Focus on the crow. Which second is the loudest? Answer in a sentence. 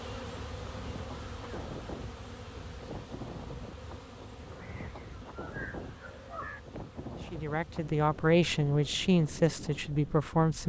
The volume of the crow peaks at 6 seconds.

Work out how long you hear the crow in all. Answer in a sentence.
The crow can be heard for 2 seconds in total.